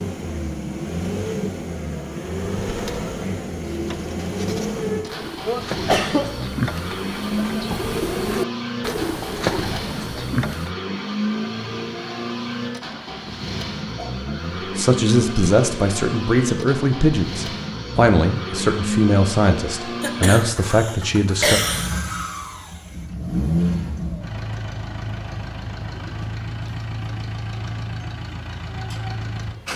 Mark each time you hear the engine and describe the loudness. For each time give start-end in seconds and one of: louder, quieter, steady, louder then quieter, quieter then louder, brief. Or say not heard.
0.0-29.7 steady.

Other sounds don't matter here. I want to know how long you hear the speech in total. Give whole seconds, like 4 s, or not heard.
7 s.